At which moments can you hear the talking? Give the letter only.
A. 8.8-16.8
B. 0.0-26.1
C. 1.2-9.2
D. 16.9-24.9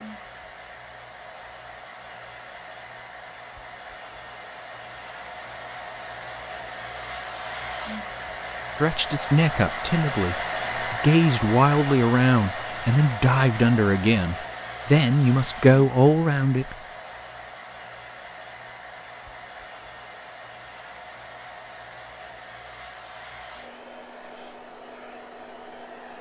A.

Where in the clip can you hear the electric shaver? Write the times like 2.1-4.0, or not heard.
not heard.